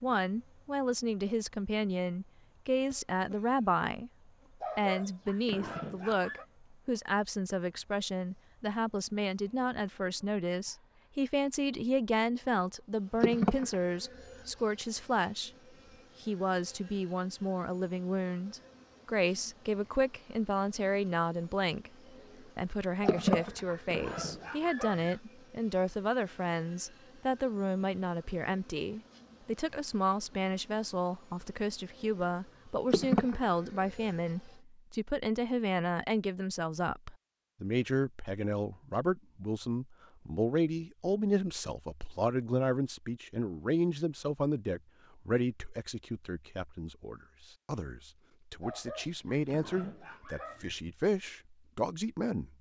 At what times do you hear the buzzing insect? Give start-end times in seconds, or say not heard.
0.0-34.5.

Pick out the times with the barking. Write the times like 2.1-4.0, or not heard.
4.6-6.5, 23.0-25.2, 48.6-50.8.